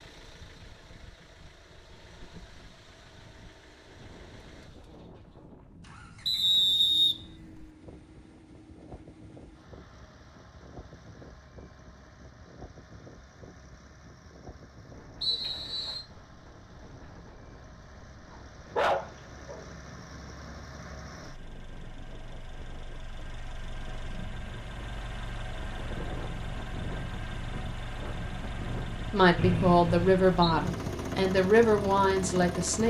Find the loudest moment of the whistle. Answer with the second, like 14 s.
7 s.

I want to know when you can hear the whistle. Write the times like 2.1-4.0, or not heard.
6.2-7.7, 15.2-16.0, 29.4-30.6.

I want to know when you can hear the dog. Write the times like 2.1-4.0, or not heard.
18.8-19.6.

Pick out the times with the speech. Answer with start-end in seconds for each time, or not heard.
29.1-32.8.